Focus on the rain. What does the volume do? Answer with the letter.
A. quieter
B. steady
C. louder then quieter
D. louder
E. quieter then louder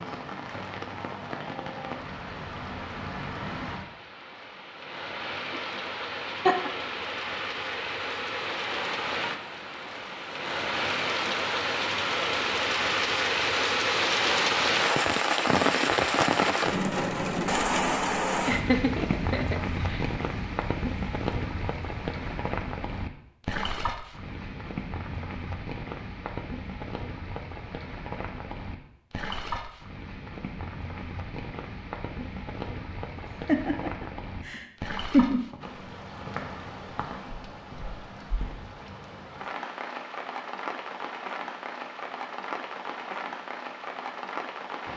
C.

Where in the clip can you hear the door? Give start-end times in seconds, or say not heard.
not heard.